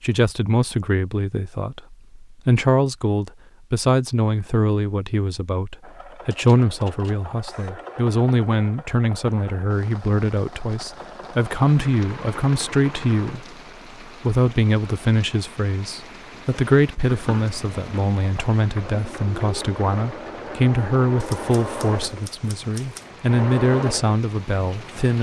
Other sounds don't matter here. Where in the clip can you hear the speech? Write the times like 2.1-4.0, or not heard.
0.0-13.4, 14.2-25.1.